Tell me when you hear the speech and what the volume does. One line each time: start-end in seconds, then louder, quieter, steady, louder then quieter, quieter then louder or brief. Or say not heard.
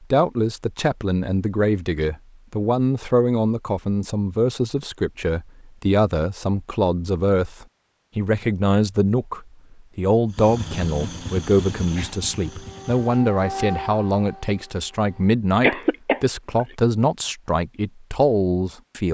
0.1-19.0 steady.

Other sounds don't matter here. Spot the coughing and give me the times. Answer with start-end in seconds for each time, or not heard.
15.6-16.6.